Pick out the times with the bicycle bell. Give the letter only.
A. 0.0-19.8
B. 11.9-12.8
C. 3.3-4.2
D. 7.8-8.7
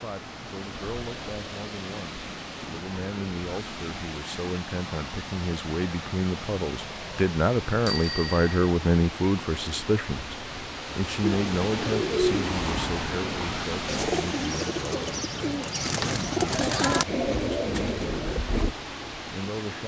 D.